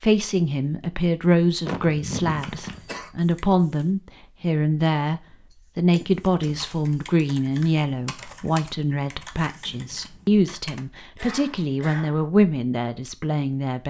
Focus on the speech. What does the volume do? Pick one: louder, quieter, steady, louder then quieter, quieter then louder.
steady.